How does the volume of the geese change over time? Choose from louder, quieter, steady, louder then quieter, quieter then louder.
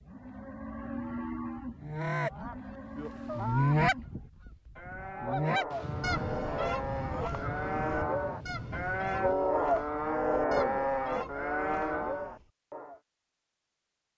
quieter.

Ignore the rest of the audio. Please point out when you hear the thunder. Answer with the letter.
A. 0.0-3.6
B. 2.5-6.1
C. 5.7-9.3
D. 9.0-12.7
C.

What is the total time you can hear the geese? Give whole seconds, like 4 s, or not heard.
11 s.